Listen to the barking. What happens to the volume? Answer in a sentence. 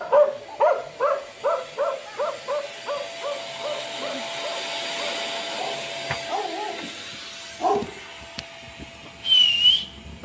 The loudness of the barking goes down, then up.